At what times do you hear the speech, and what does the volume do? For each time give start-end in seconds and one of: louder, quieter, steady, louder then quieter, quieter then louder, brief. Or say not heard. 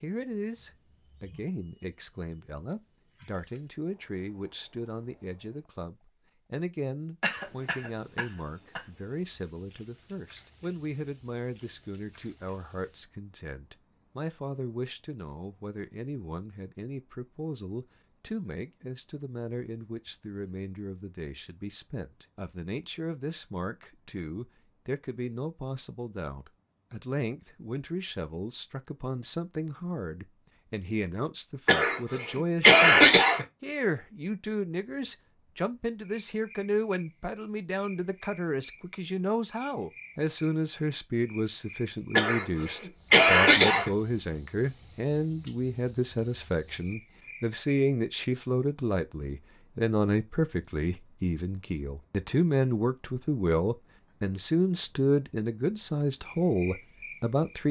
0.0-57.6 louder.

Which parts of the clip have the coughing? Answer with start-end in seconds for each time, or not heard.
7.2-8.8, 31.6-33.5, 42.1-43.9.